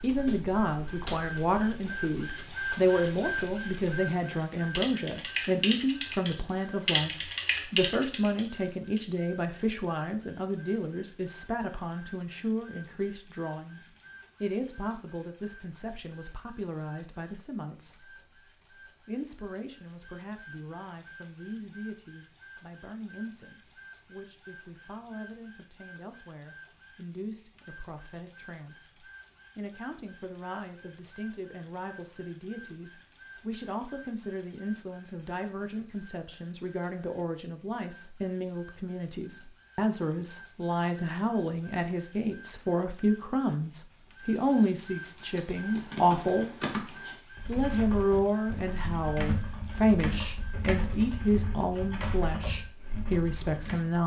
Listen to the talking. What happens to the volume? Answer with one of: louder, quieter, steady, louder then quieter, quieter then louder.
quieter then louder.